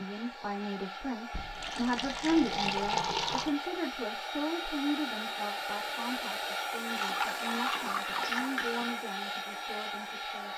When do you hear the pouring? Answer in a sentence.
You can hear the pouring from 1.3 to 3.5 s and from 7.0 to 8.9 s.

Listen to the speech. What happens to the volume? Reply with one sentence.
The loudness of the speech goes down.